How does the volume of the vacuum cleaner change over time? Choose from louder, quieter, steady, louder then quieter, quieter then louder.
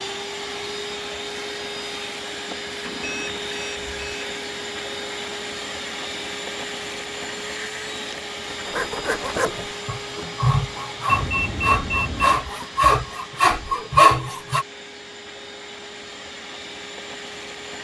quieter.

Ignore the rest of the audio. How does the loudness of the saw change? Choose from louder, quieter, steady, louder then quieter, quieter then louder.
louder.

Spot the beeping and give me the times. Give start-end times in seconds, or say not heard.
2.9-4.2, 11.1-12.3.